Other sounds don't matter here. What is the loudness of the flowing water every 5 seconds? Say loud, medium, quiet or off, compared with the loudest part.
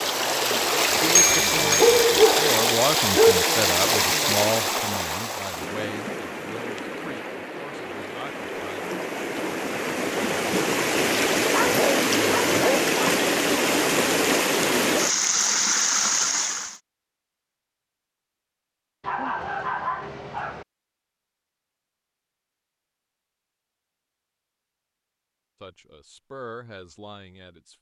loud, medium, loud, loud, off, off.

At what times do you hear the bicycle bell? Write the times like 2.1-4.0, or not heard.
1.1-2.0.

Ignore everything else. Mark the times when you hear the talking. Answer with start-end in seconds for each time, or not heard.
0.0-8.8, 25.6-27.7.